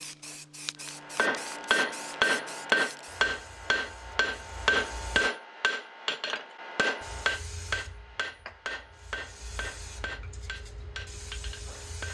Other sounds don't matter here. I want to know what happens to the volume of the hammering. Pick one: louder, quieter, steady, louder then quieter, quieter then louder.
quieter.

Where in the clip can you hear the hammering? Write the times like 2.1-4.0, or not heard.
0.9-12.1.